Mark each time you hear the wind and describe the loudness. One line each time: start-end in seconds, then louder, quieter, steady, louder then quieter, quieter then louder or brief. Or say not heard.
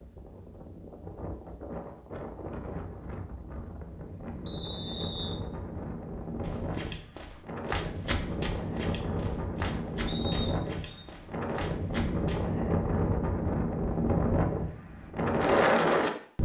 0.0-16.4 louder.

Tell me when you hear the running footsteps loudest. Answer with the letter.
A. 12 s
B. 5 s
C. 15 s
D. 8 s
D.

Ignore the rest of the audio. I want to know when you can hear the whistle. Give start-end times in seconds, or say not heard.
4.5-5.3, 10.1-11.0.